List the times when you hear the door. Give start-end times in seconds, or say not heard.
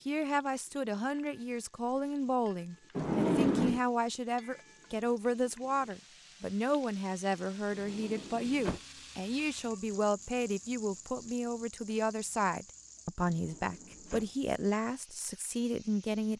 3.0-3.8, 7.7-8.8, 13.2-14.3.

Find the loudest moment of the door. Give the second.
3 s.